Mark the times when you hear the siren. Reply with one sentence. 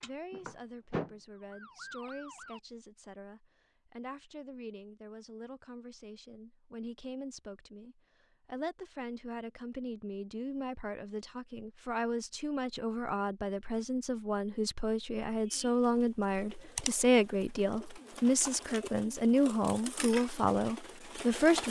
You can hear the siren from 0.0 to 2.6 s.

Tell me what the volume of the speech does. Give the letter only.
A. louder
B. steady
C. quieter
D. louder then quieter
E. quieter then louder
A.